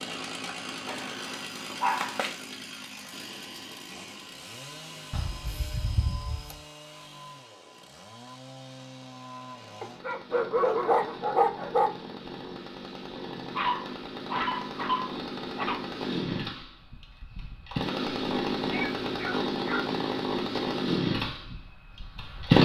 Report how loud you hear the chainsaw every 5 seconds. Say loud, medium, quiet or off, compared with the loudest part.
quiet, quiet, quiet, medium, loud.